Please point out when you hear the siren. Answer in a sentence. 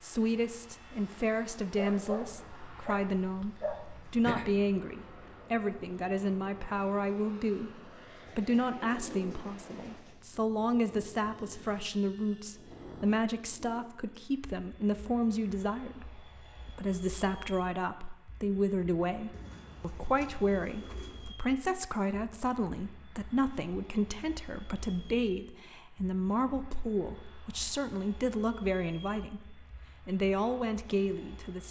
You can't hear the siren here.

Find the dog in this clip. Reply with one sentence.
The dog can be heard from 1.8 to 4.5 s.